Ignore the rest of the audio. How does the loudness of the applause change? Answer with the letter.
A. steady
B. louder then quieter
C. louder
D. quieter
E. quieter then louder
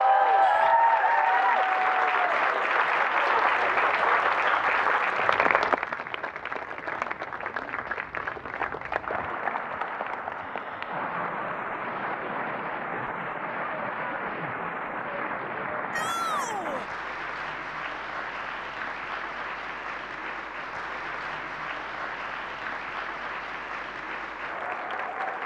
D.